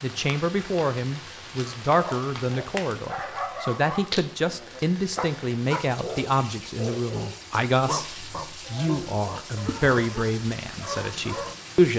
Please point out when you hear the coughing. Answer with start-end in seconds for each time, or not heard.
8.6-9.2.